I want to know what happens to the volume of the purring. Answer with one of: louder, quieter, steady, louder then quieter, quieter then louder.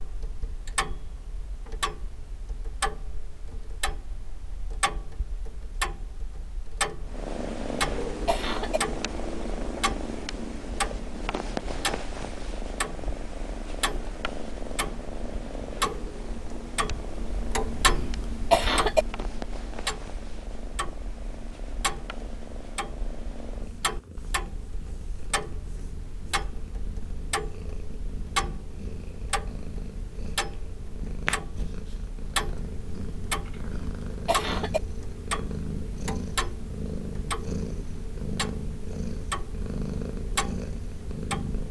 quieter then louder.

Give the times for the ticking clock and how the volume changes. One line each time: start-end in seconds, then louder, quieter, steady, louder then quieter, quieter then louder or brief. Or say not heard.
0.0-41.6 steady.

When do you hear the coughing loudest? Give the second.
19 s.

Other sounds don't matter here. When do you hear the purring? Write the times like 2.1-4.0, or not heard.
7.0-41.6.